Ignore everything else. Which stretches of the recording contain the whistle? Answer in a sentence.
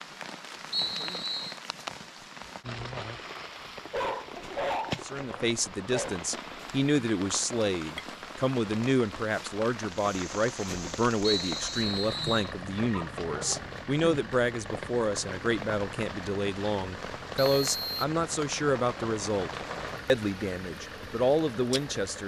The whistle can be heard from 0.7 to 1.6 s, from 11.2 to 12.5 s and from 17.4 to 18.1 s.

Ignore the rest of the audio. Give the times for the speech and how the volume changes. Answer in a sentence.
You can hear the speech from 5.0 to 22.2 s, at a steady volume.